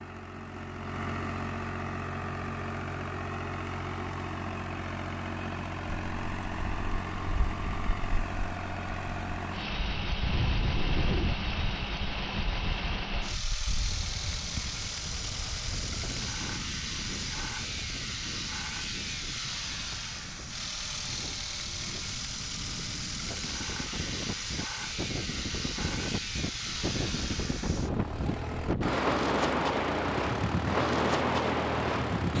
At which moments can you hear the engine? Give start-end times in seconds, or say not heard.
0.0-32.3.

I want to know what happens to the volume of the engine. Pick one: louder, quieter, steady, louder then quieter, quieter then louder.
steady.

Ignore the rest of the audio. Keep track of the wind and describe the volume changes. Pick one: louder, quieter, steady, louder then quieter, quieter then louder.
quieter then louder.